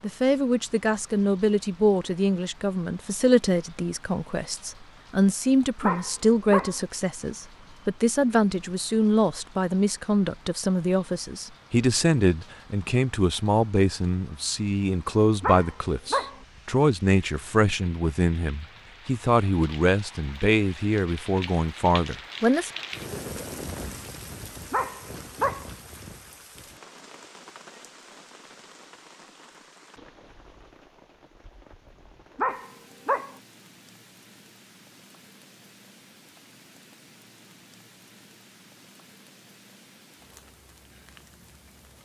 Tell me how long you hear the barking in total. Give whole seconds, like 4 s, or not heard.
4 s.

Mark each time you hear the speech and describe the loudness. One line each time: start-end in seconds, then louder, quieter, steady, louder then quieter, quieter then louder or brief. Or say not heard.
0.0-22.7 steady.